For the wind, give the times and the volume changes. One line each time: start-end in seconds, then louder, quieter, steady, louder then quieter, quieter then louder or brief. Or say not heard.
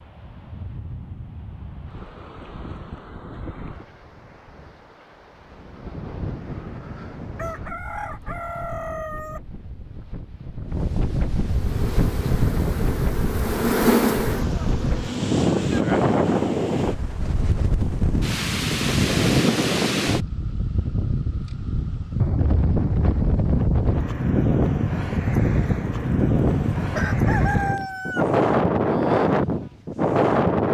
0.0-30.7 louder.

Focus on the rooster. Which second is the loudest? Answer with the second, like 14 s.
28 s.